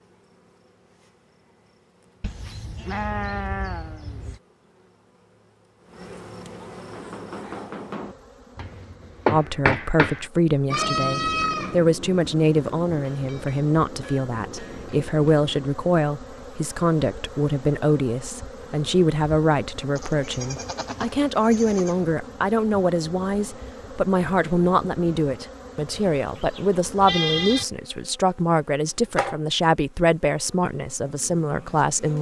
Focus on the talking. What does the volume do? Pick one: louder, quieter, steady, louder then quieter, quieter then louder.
steady.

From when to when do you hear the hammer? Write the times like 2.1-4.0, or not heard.
6.8-15.5.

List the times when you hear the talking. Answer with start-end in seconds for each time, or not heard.
9.2-32.1.